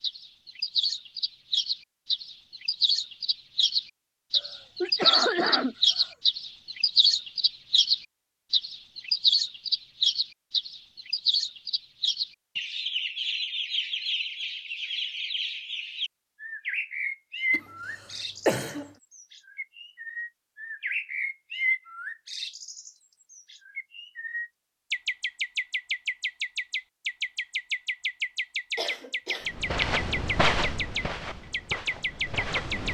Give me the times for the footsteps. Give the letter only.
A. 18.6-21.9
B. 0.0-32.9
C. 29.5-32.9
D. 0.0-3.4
C.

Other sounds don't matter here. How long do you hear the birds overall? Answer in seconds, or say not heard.
33 s.